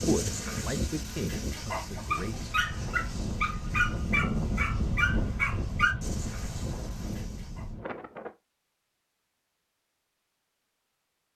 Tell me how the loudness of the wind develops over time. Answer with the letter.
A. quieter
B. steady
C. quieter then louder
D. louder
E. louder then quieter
E.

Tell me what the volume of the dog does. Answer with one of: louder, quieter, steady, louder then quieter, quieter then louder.
louder then quieter.